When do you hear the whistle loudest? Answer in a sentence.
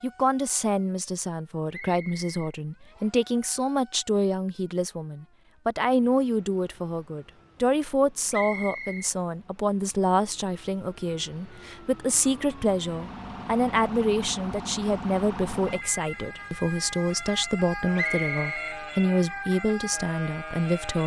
The loudest moment of the whistle is at 18 seconds.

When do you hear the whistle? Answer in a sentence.
The whistle can be heard from 1.7 to 3.2 s, from 8.3 to 9.1 s and from 17.9 to 18.8 s.